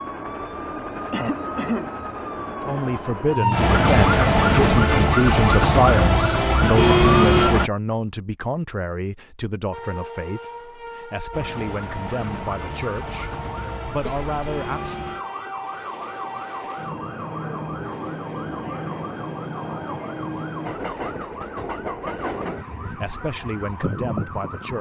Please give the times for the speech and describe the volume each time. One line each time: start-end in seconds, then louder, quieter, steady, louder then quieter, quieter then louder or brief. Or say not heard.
2.6-15.1 quieter
22.9-24.7 brief.